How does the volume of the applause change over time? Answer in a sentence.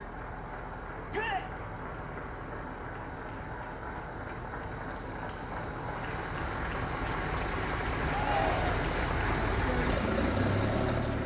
The loudness of the applause goes up.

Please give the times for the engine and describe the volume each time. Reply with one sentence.
You can hear the engine from 0.0 to 11.2 s, getting louder.